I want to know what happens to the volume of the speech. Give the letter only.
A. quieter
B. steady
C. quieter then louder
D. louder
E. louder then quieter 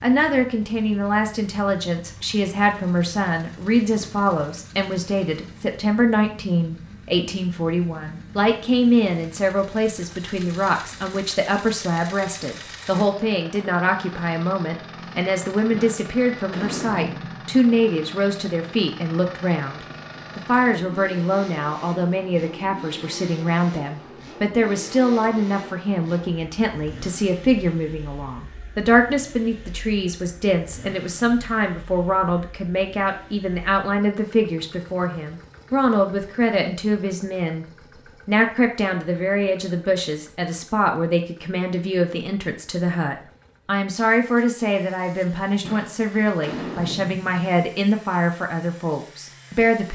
B.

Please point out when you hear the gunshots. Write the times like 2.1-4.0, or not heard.
15.7-17.6, 45.6-47.4.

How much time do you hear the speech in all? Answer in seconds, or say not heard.
49 s.